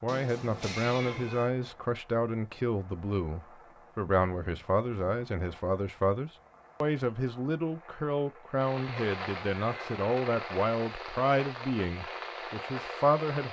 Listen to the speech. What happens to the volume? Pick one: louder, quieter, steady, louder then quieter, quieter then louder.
steady.